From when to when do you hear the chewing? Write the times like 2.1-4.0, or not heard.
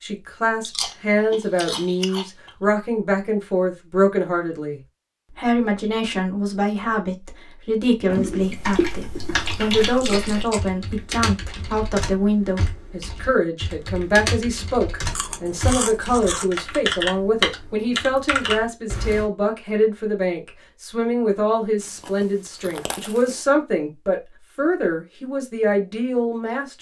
0.6-2.5, 8.1-10.6, 15.1-16.6, 21.8-23.4.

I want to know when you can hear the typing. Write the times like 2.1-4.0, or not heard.
8.2-19.2.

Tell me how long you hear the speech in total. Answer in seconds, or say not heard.
27 s.